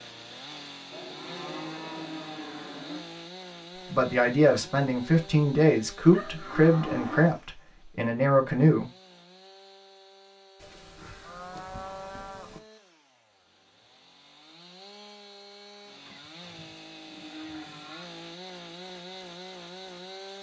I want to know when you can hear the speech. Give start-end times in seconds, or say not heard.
3.9-8.8.